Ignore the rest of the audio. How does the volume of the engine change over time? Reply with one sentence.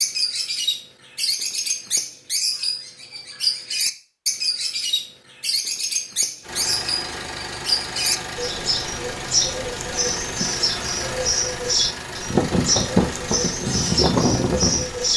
The volume of the engine goes up.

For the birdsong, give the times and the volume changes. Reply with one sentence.
You can hear the birdsong from 0.0 to 15.1 s, at a steady volume.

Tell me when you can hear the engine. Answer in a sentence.
You can hear the engine from 6.4 to 15.1 s.